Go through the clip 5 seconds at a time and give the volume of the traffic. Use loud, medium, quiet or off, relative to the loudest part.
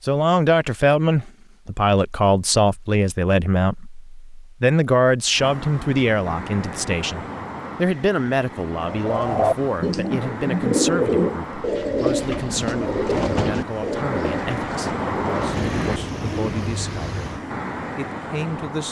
off, medium, loud, loud.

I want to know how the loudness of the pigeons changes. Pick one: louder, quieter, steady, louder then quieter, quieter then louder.
quieter.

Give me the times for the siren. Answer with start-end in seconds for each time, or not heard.
not heard.